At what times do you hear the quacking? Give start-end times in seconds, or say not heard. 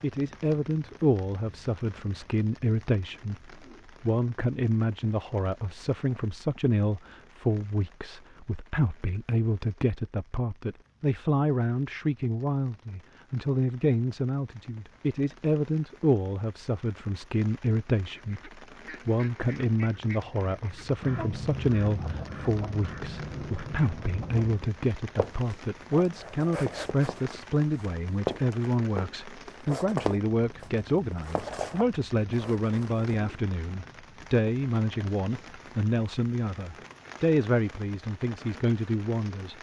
18.1-24.6.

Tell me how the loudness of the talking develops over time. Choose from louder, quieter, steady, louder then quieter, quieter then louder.
steady.